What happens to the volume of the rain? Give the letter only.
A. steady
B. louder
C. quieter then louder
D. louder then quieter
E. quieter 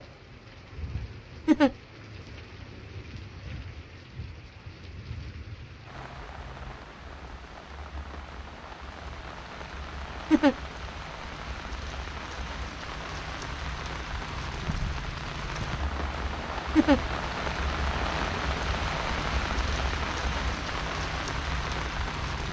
B.